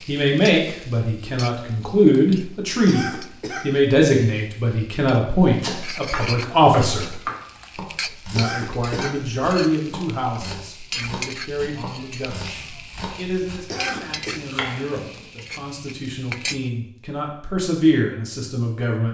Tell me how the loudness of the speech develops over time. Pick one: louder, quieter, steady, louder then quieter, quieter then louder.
quieter then louder.